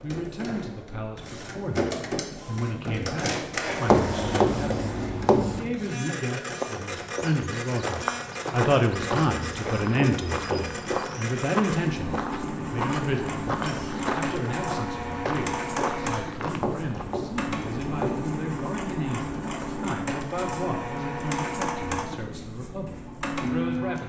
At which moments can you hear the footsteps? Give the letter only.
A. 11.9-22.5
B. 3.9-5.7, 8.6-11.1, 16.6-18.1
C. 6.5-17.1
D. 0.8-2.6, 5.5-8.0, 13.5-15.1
C.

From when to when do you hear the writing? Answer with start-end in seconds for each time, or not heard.
3.9-5.7, 8.6-11.1, 16.6-18.1.